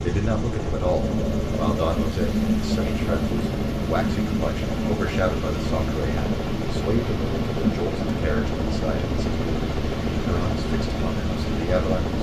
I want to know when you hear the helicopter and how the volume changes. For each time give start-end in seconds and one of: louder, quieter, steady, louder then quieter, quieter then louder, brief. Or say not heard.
0.0-12.1 steady.